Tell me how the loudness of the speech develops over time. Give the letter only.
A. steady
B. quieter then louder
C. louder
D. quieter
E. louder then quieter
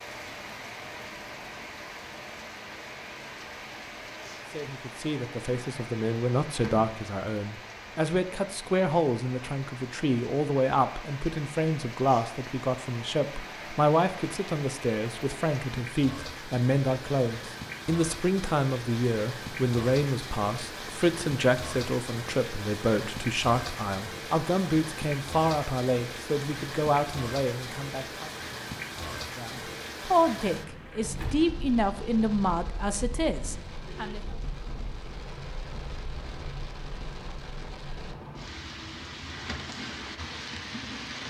A.